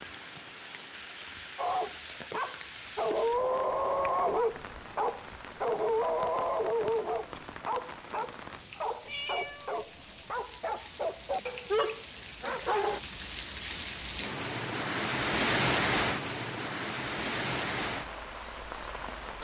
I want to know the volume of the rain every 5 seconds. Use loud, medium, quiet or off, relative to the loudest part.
quiet, quiet, medium, loud.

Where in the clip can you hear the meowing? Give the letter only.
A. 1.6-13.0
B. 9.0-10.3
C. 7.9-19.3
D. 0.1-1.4
B.